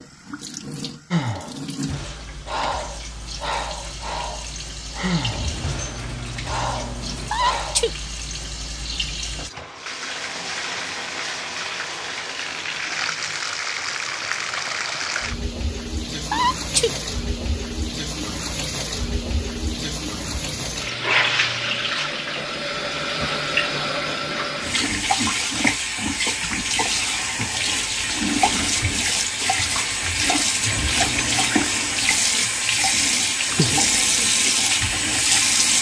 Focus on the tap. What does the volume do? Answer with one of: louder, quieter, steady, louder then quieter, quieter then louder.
louder.